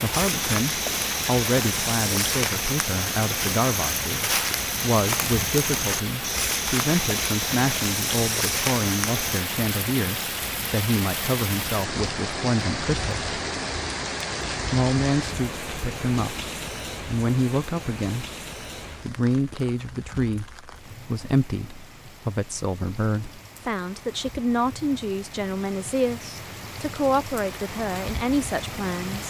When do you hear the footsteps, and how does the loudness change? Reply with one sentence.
The footsteps can be heard from 0.1 to 9.2 s, at a steady volume.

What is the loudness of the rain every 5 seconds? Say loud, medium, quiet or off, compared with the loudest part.
loud, loud, loud, medium, quiet, medium.